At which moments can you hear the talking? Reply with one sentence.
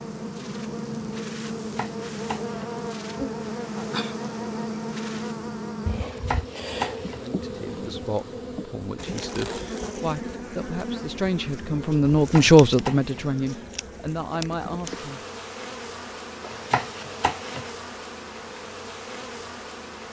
The talking can be heard from 7.2 to 15.2 s.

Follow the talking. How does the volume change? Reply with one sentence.
The volume of the talking goes up, then down.